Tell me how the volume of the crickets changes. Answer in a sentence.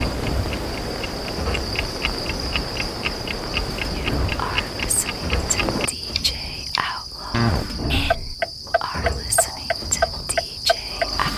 The volume of the crickets stays about the same.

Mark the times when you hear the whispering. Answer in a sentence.
You can hear the whispering from 4.0 to 11.3 s.